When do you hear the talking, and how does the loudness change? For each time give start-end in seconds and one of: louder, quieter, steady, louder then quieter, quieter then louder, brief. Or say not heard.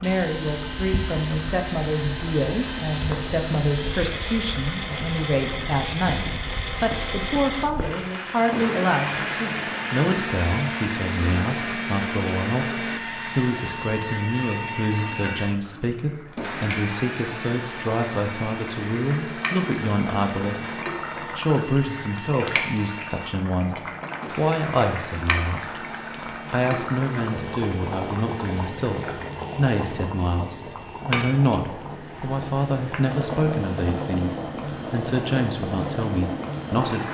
0.0-37.1 steady.